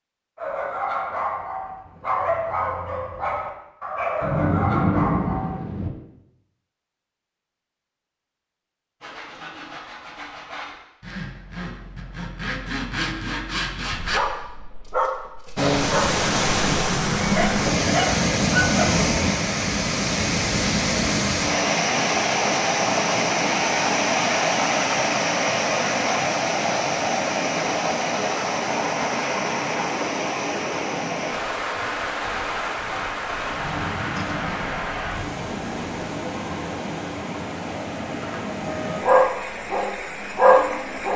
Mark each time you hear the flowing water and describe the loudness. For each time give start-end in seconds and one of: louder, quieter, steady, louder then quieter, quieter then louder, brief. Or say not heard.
15.6-41.1 quieter.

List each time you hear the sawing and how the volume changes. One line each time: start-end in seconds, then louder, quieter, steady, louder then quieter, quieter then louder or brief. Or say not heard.
9.0-14.2 louder.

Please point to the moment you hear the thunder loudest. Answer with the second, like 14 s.
5 s.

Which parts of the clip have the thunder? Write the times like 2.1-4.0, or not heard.
4.2-5.9, 33.5-35.2.